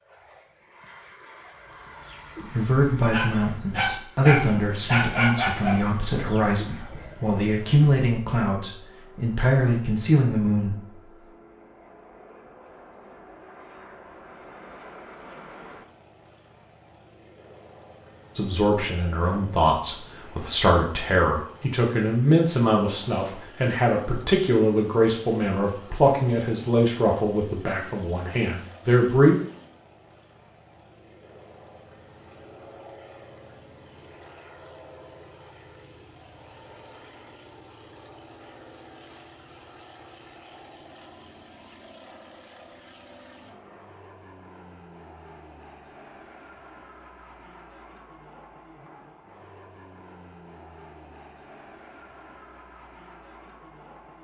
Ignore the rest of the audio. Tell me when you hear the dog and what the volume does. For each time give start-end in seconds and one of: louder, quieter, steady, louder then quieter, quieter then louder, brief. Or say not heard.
1.4-7.4 louder then quieter.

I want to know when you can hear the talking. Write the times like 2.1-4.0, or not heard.
2.5-10.9, 18.4-29.4.